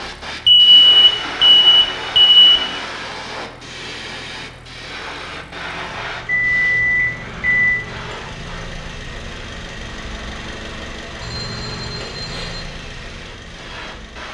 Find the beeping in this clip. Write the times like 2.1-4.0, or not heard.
0.5-2.6, 6.2-7.7, 11.2-12.6.